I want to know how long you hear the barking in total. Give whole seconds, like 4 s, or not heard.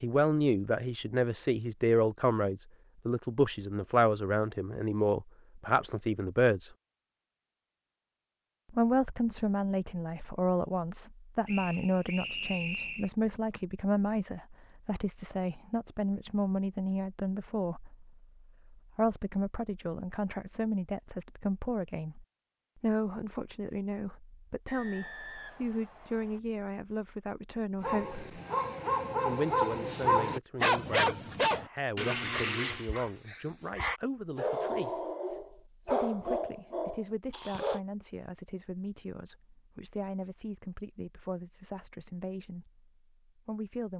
10 s.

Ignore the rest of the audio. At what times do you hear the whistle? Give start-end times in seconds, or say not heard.
11.4-13.1, 24.6-26.4.